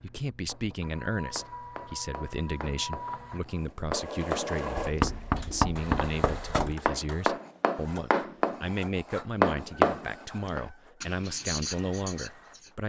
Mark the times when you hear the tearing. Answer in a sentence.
You can't hear the tearing here.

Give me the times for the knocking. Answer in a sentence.
You can hear the knocking from 4.8 to 6.8 s.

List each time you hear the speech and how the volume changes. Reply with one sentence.
The speech can be heard from 0.0 to 12.8 s, at a steady volume.